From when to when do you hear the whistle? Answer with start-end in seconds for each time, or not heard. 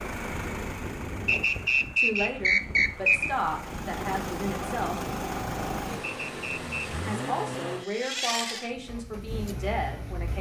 1.2-3.3, 6.0-7.0.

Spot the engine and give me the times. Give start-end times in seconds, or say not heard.
0.0-10.3.